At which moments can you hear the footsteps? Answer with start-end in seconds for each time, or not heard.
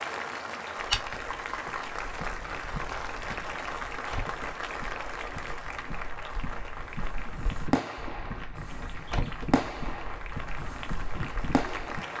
0.8-12.0.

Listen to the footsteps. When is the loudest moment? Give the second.
1 s.